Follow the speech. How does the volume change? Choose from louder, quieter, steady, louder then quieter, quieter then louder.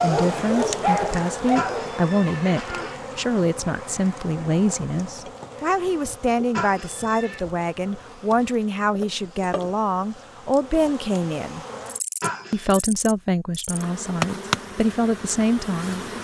steady.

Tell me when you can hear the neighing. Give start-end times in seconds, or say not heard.
1.6-3.0, 6.5-7.5, 12.2-12.8.